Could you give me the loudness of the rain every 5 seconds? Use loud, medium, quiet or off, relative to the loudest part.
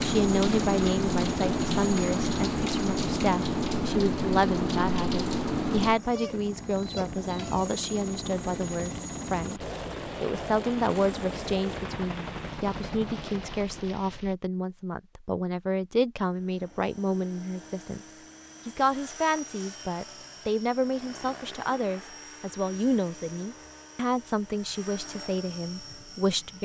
loud, medium, quiet, off, off, off.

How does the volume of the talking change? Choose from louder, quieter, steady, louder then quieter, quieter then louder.
steady.